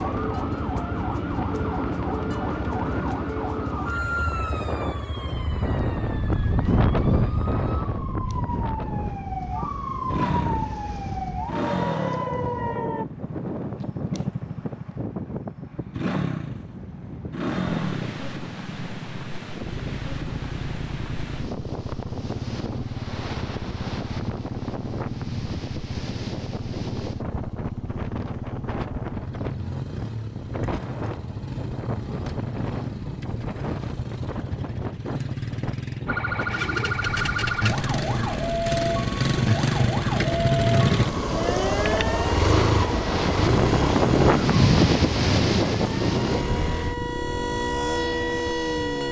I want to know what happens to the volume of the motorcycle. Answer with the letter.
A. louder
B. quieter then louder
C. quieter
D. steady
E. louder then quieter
A.